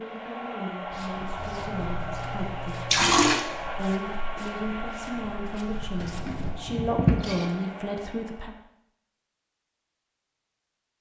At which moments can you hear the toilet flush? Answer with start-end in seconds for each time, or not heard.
1.4-3.5, 6.0-7.5.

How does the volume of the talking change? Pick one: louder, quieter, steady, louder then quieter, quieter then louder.
louder.